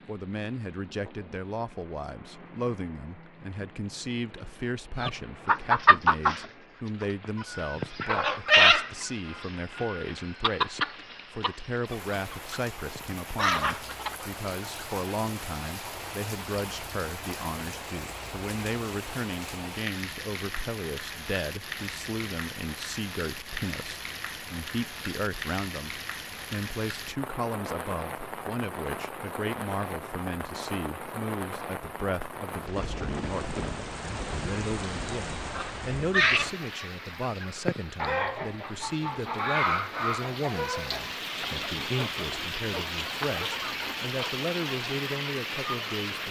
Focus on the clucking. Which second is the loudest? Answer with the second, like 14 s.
9 s.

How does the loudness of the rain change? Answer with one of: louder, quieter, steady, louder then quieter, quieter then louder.
louder.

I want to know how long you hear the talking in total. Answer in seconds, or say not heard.
46 s.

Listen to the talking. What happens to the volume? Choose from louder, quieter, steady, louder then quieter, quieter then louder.
steady.